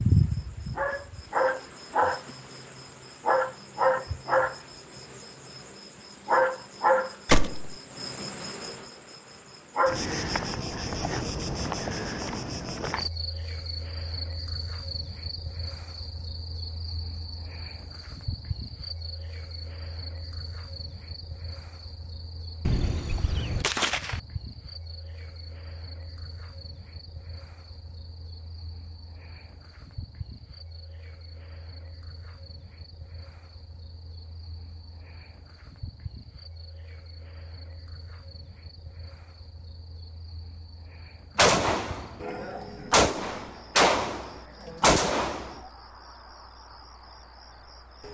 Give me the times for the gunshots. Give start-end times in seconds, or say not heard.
7.2-7.8, 22.6-24.2, 41.4-45.5.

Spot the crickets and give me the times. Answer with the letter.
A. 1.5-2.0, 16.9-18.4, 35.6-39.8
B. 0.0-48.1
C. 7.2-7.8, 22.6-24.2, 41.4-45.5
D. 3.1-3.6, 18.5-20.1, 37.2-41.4
B.